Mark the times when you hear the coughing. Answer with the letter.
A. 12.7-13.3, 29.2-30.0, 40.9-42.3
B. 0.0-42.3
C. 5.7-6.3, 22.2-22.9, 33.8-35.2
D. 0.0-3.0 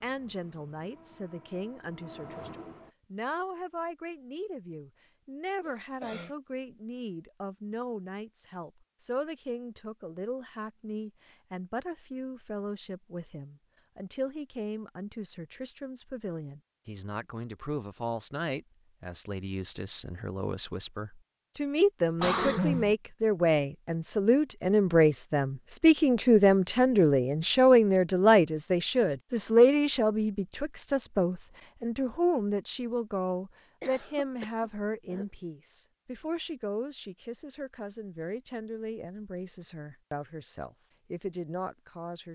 C.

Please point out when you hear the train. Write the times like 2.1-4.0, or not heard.
0.0-3.0.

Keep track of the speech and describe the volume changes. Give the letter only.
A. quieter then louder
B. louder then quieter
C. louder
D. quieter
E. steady
B.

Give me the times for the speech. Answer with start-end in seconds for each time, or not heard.
0.0-42.3.